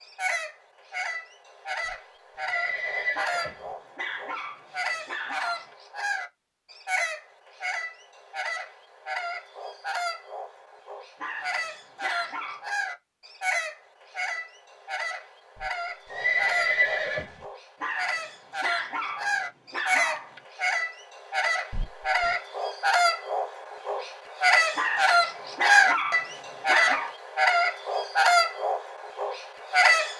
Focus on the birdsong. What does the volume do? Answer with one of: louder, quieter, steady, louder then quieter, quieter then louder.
louder.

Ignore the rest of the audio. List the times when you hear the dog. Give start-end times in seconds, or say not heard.
3.1-5.8, 11.2-12.7, 17.8-20.4, 24.8-27.1.